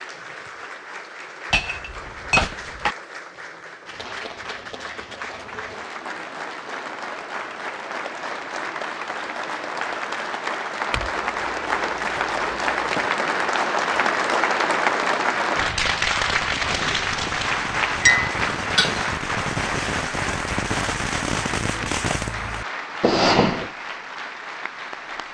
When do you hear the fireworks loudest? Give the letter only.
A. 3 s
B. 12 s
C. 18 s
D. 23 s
D.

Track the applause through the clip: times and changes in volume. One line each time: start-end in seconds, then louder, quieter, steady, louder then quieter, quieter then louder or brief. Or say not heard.
0.0-25.2 louder then quieter.